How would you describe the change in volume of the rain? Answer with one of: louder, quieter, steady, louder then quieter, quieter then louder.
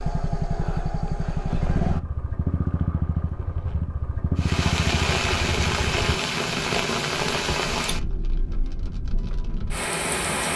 quieter then louder.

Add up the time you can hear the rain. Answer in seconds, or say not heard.
6 s.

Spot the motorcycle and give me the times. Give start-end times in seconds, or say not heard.
0.0-6.2.